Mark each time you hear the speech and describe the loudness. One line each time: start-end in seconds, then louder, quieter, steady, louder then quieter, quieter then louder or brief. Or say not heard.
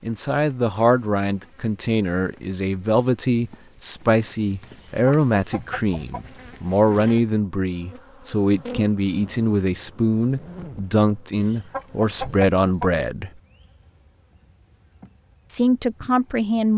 0.0-13.3 steady
15.4-16.7 brief.